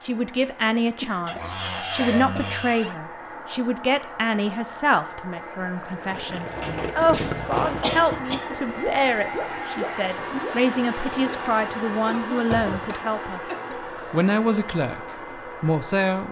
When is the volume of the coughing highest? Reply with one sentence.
The volume of the coughing peaks at 8 seconds.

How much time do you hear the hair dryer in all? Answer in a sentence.
The hair dryer can be heard for 16 seconds in total.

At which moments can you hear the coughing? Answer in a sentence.
The coughing can be heard from 1.0 to 2.6 s, from 7.8 to 8.6 s and from 12.1 to 13.8 s.